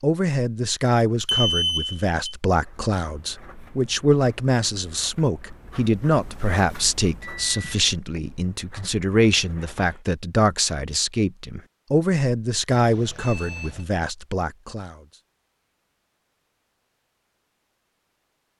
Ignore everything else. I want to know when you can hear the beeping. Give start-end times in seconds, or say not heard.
1.2-2.4, 7.2-8.2, 12.8-13.8.